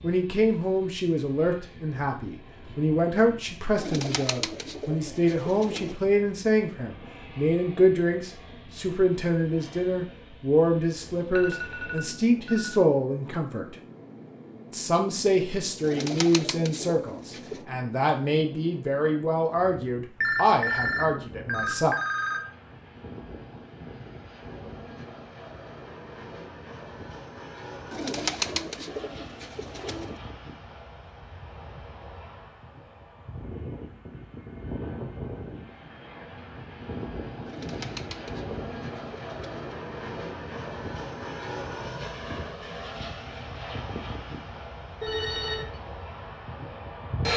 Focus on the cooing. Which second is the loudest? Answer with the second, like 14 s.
28 s.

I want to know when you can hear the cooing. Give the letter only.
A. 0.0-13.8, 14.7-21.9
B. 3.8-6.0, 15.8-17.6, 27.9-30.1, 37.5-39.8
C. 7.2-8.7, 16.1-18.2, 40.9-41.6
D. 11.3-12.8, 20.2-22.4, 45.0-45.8
B.